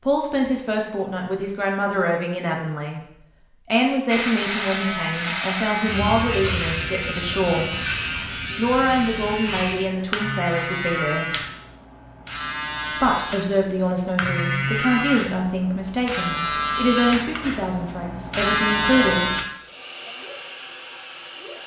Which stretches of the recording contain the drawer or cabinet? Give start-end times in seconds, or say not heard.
not heard.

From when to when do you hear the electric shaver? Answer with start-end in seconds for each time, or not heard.
4.0-19.4.